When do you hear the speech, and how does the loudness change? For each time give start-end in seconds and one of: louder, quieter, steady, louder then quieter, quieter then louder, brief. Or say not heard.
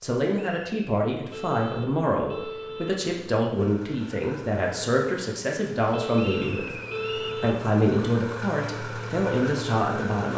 0.0-10.3 steady.